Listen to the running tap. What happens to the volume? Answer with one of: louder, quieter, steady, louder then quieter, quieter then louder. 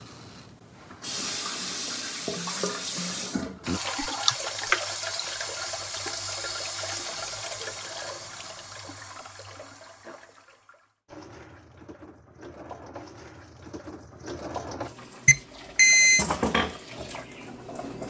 quieter then louder.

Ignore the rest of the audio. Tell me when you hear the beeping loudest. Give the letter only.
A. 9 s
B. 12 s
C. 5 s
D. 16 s
D.